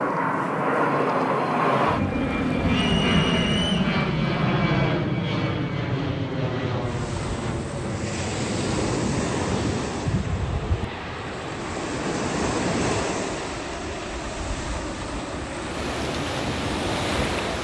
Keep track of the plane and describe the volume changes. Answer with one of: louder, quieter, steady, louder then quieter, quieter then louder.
quieter.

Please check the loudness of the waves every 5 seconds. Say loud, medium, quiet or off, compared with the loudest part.
off, loud, loud, loud.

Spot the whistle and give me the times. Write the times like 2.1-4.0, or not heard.
2.7-3.8.